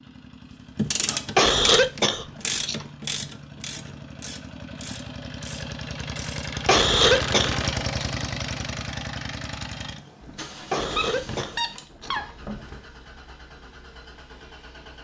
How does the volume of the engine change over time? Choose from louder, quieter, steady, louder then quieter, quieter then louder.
louder then quieter.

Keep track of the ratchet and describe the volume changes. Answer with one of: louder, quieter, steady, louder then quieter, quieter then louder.
quieter.